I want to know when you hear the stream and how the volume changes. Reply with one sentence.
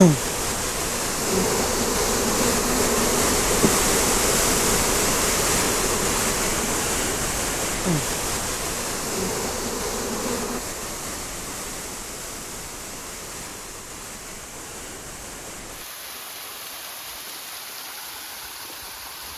The stream can be heard from 0.0 to 19.3 s, getting quieter.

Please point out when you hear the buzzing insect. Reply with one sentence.
The buzzing insect can be heard from 0.0 to 10.6 s.